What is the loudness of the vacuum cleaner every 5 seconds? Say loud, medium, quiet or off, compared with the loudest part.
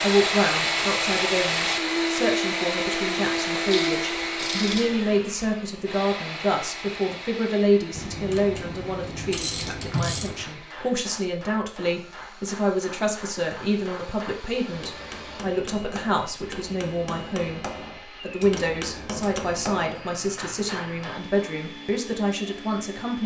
loud, quiet, quiet, quiet, quiet.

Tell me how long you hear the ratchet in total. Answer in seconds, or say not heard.
5 s.